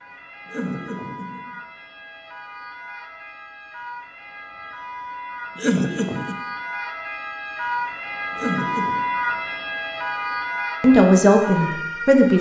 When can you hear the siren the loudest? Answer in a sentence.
The loudest moment of the siren is at 9 seconds.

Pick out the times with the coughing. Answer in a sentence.
The coughing can be heard from 0.5 to 1.6 s, from 5.5 to 6.3 s and from 8.3 to 9.0 s.